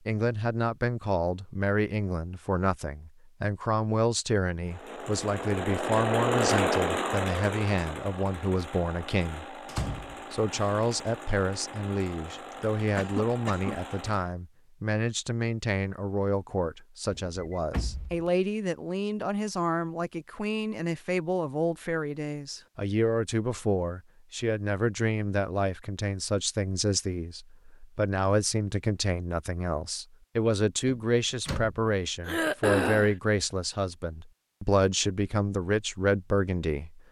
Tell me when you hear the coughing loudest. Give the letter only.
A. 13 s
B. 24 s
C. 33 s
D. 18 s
C.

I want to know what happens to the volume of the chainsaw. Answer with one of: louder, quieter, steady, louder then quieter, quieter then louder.
quieter.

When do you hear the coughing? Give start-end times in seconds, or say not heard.
12.5-13.8, 32.2-33.1.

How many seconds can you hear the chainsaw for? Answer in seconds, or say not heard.
10 s.